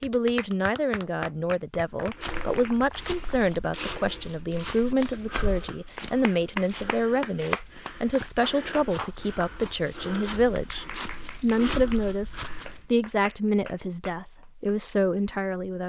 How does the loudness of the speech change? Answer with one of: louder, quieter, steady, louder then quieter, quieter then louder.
steady.